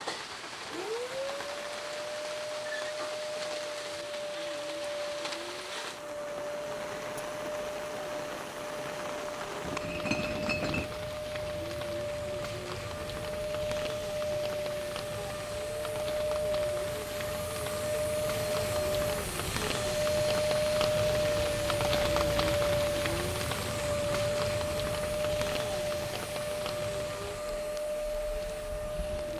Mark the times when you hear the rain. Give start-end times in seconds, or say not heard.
0.0-29.3.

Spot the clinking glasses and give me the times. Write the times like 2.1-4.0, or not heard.
9.6-10.9.